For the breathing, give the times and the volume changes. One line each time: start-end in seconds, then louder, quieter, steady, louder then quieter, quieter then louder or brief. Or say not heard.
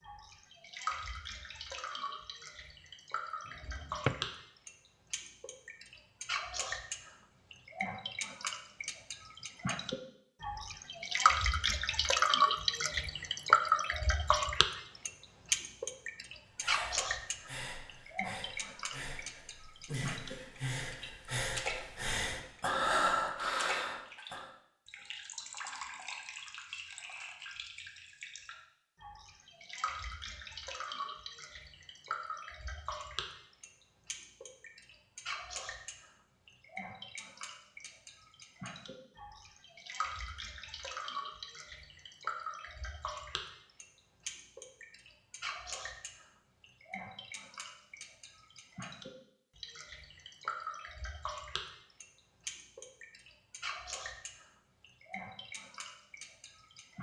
16.5-24.5 louder.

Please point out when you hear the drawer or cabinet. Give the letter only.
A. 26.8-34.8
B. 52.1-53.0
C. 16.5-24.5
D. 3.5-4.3
D.